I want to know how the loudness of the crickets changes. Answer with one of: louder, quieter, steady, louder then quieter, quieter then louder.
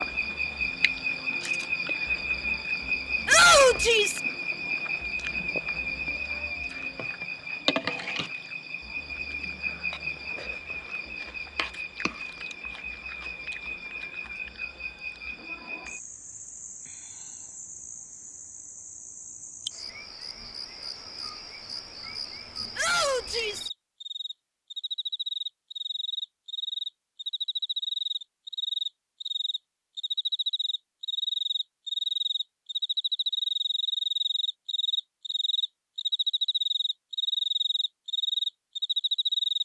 quieter then louder.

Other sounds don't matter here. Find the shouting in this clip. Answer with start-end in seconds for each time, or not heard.
3.2-4.2, 22.8-23.7.